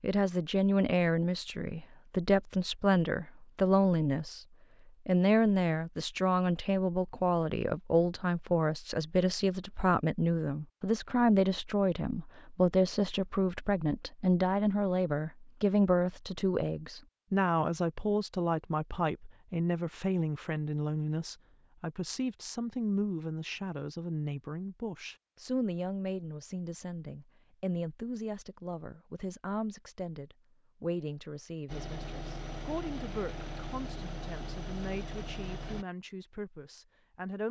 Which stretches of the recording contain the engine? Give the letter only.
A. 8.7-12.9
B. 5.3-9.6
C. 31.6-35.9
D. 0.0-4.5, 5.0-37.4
C.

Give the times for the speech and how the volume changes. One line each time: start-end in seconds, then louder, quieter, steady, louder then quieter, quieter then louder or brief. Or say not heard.
0.0-4.5 quieter then louder
5.0-37.4 quieter.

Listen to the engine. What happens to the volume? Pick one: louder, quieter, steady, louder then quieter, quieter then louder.
steady.